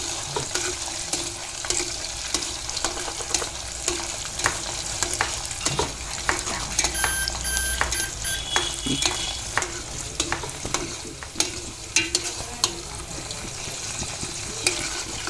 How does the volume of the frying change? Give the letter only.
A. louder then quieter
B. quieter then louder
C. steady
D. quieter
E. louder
C.